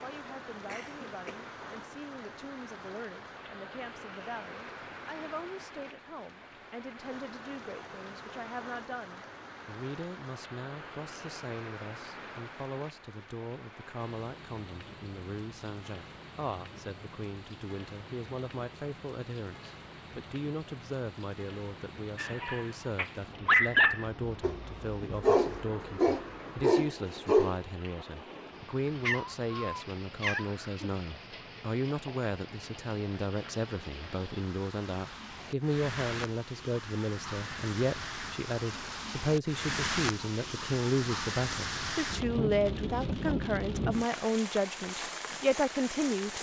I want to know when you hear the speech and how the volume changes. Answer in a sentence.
You can hear the speech from 0.0 to 46.3 s, getting louder.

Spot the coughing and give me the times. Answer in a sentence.
You can hear the coughing from 0.2 to 1.4 s.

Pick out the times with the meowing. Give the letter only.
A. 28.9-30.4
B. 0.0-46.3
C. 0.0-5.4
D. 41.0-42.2
A.